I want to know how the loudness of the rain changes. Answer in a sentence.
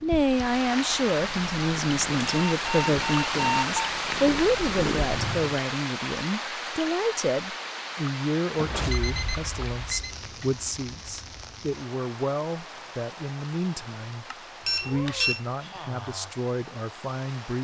The loudness of the rain goes down.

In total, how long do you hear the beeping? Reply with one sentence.
The beeping can be heard for 4 seconds in total.